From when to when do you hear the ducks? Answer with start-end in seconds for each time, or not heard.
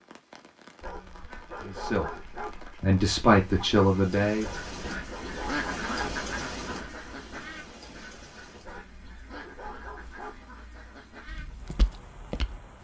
1.1-11.6.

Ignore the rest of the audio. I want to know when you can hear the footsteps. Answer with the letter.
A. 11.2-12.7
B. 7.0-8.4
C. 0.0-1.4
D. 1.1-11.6
A.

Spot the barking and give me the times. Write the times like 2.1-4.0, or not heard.
0.8-2.6, 4.4-6.2, 8.6-10.4.